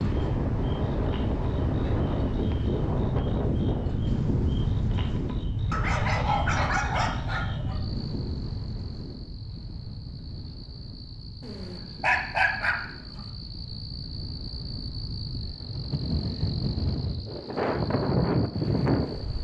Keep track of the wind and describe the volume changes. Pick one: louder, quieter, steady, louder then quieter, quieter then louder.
quieter then louder.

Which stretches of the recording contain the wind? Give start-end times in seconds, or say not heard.
0.0-19.3.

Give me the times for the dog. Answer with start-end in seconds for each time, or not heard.
5.7-7.8, 11.4-13.3.